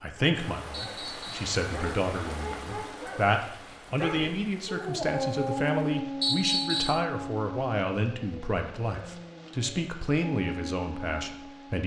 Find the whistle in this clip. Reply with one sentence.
The whistle can be heard from 0.7 to 1.4 s and from 6.2 to 7.0 s.